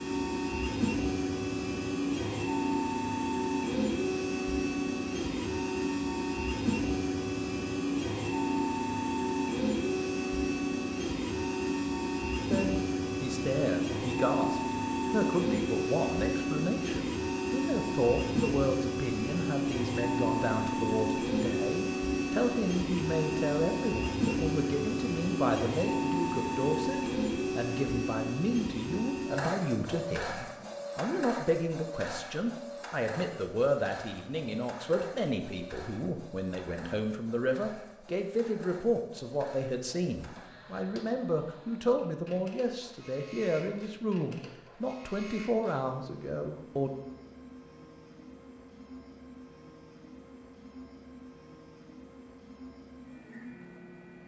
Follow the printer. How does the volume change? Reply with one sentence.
The loudness of the printer goes down.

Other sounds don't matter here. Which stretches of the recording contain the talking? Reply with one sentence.
The talking can be heard from 12.5 to 46.9 s.